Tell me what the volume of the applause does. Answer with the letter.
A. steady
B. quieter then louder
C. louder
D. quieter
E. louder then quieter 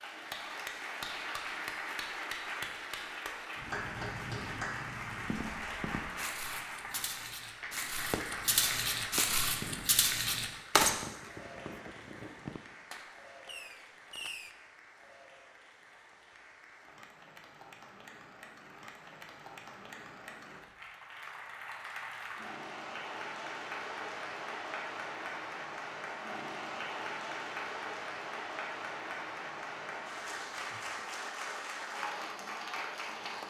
B.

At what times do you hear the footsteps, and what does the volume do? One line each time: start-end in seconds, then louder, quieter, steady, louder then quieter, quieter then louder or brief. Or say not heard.
5.2-10.9 louder.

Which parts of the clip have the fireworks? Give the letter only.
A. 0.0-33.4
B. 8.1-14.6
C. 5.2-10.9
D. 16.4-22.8
B.